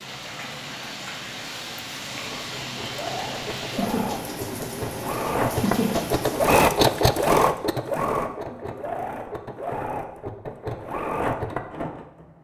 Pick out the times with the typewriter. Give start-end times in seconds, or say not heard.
not heard.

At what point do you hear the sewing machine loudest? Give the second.
7 s.